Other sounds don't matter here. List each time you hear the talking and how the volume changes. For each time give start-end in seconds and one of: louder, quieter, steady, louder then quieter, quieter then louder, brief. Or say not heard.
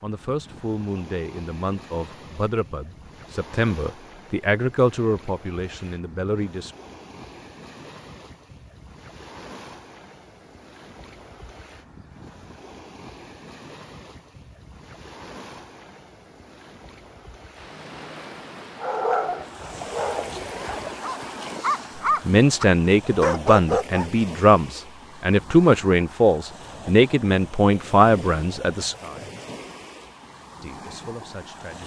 0.0-6.8 louder then quieter
22.2-29.3 steady
30.6-31.8 brief.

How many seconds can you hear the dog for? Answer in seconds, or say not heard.
5 s.